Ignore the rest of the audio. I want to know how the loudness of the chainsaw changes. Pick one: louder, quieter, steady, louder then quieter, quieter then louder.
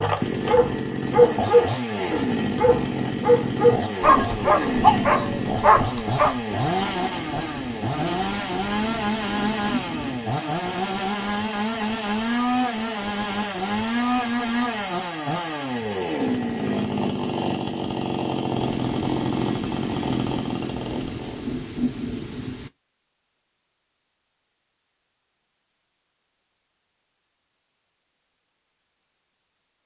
steady.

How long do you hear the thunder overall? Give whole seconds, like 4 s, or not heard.
8 s.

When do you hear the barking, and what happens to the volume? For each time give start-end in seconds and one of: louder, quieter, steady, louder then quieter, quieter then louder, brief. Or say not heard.
0.0-6.4 steady.